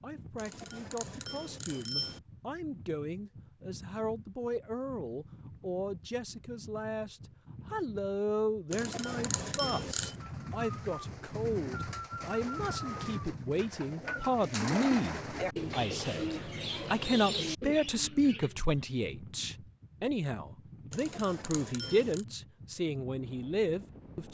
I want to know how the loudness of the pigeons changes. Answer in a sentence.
The loudness of the pigeons goes up.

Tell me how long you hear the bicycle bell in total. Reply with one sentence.
You can hear the bicycle bell for 5 seconds altogether.